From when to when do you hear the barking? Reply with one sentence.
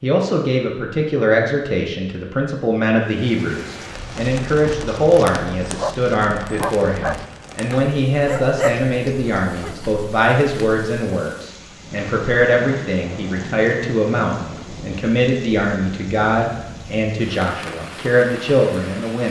You can hear the barking from 3.9 to 10.1 s.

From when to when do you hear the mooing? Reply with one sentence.
The mooing can't be heard in this clip.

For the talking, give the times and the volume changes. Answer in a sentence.
You can hear the talking from 0.0 to 19.2 s, at a steady volume.